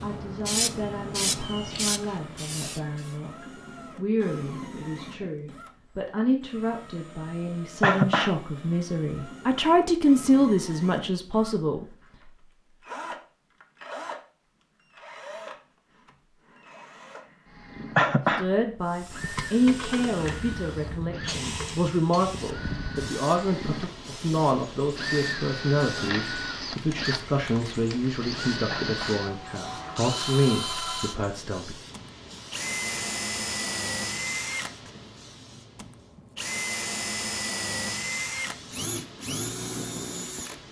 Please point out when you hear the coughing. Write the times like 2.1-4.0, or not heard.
7.8-8.3, 17.9-18.4, 28.7-29.2.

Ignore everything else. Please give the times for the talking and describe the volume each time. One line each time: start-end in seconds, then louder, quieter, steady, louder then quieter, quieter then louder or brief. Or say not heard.
0.0-11.8 louder
18.2-31.8 steady.